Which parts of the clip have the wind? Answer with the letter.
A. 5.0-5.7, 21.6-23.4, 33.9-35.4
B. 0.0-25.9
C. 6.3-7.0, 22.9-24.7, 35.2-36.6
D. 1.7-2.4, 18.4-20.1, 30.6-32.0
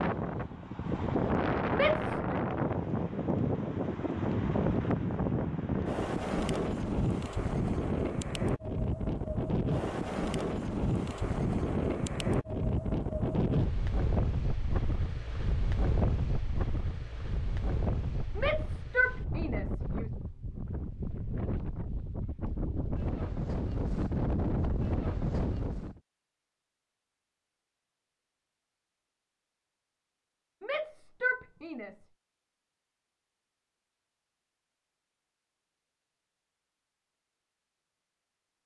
B.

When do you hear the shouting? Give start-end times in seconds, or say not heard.
1.7-2.4, 18.4-20.1, 30.6-32.0.